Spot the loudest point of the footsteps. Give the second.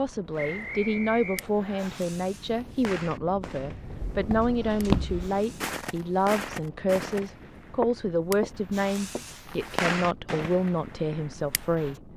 5 s.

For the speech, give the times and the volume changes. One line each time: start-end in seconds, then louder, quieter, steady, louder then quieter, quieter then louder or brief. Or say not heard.
0.0-12.1 steady.